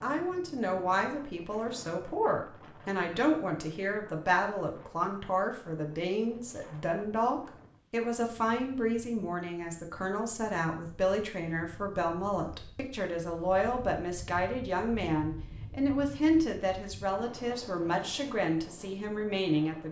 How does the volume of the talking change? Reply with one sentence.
The volume of the talking stays about the same.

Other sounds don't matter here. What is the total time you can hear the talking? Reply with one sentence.
You can hear the talking for 20 seconds altogether.